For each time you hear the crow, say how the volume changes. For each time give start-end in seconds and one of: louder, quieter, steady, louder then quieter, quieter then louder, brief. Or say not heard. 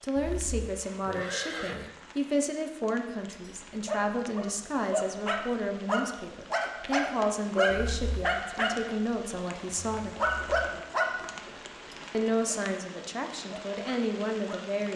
not heard.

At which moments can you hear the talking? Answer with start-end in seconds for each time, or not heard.
0.0-10.2, 12.1-14.9.